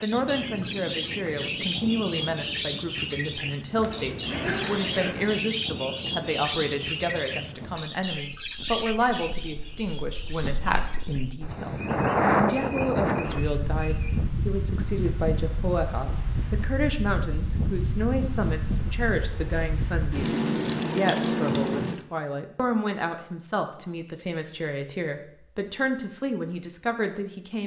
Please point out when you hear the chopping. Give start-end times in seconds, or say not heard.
not heard.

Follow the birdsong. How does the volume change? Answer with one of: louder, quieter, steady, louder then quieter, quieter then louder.
quieter.